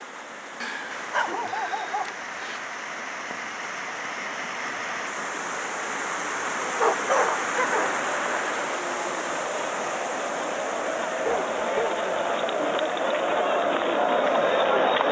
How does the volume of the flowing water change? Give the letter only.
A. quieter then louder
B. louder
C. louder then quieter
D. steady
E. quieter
C.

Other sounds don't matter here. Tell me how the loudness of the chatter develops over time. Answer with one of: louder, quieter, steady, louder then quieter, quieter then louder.
louder.